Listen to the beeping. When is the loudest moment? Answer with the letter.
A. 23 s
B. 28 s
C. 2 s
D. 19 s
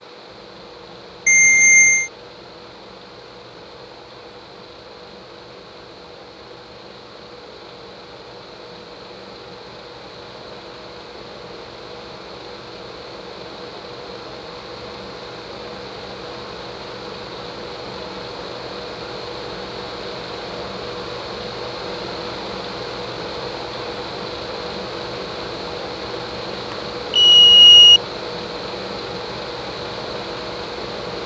B.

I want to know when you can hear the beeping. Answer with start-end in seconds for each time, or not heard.
1.2-2.1, 26.7-28.0.